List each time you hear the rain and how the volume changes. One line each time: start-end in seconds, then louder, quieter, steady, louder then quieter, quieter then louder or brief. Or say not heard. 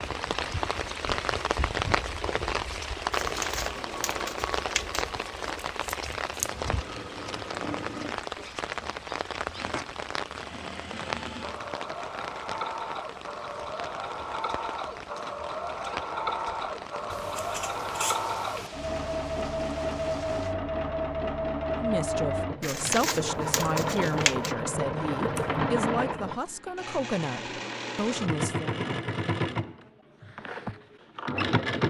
0.0-20.6 quieter.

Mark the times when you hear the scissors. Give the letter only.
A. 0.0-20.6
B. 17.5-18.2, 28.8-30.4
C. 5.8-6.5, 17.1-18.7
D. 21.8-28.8
C.